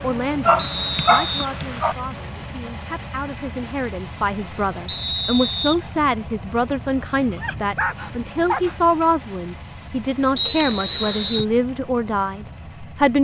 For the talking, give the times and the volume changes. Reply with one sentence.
The talking can be heard from 0.0 to 13.1 s, getting louder.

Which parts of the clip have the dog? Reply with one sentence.
The dog can be heard from 0.5 to 1.9 s and from 7.2 to 8.8 s.